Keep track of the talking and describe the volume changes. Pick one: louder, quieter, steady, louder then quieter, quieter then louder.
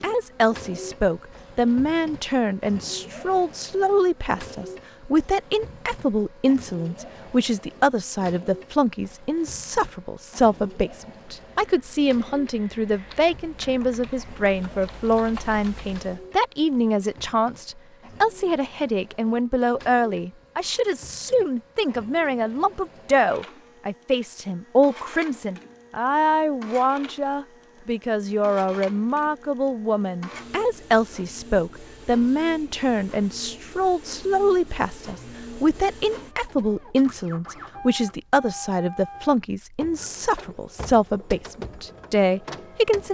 steady.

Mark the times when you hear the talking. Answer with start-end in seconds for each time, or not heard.
0.0-43.0.